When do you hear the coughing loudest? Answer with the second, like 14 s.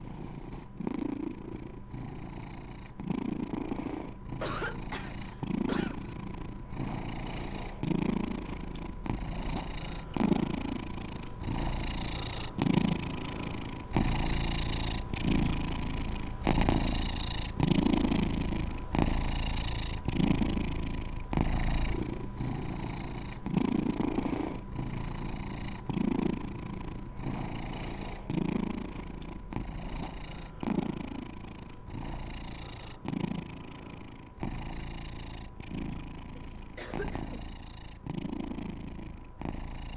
5 s.